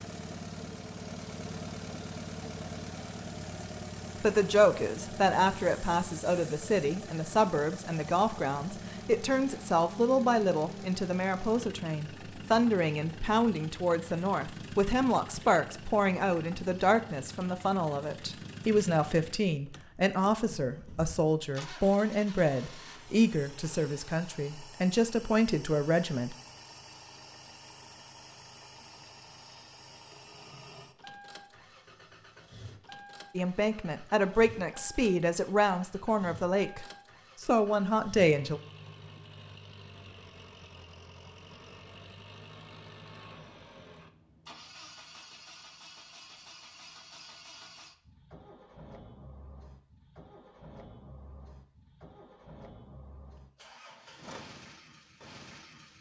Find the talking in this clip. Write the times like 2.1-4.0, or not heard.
4.2-26.4, 33.4-38.6.